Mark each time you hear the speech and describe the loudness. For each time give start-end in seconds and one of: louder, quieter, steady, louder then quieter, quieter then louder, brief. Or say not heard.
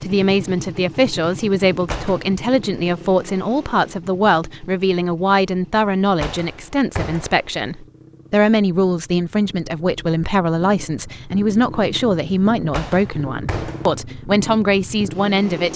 0.0-15.7 steady.